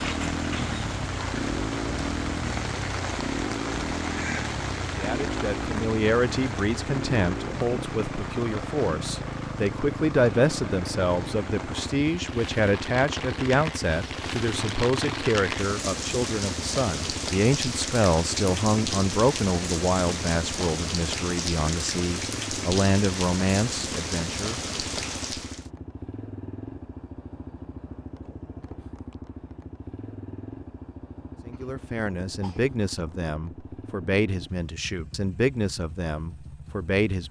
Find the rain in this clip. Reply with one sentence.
The rain can be heard from 0.0 to 25.7 s.